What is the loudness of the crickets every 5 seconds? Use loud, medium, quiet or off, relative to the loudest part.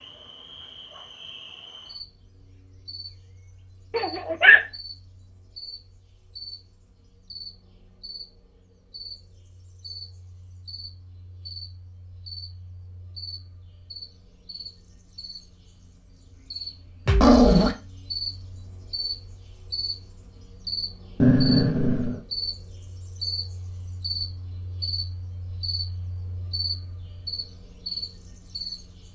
medium, medium, medium, loud, loud, loud.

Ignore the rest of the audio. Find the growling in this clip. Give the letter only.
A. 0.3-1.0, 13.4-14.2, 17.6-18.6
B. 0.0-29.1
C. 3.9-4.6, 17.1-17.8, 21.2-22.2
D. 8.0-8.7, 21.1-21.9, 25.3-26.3
C.